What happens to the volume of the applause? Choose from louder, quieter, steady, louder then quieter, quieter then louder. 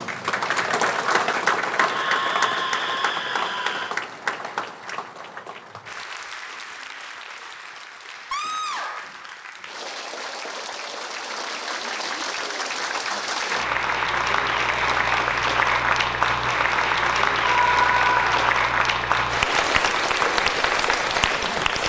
quieter then louder.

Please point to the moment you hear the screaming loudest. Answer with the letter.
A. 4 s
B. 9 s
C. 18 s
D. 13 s
C.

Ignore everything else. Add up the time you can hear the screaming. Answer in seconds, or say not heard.
4 s.